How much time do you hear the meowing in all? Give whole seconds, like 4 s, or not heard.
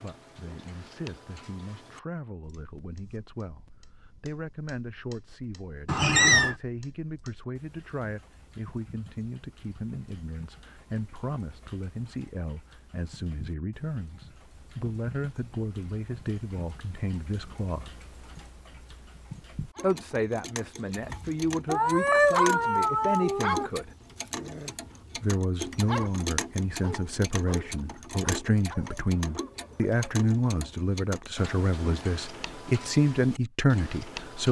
3 s.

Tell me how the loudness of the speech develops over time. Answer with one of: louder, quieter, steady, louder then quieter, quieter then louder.
louder.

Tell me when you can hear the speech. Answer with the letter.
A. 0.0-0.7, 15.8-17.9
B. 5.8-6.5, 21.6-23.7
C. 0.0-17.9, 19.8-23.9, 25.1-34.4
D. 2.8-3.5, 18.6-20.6
C.